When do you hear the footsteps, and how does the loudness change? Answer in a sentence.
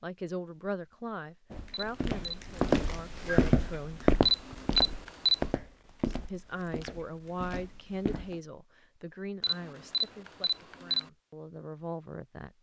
You can hear the footsteps from 1.5 to 8.4 s, getting quieter.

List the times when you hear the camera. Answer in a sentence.
You can hear the camera from 1.7 to 2.4 s, from 4.2 to 5.5 s and from 9.4 to 11.1 s.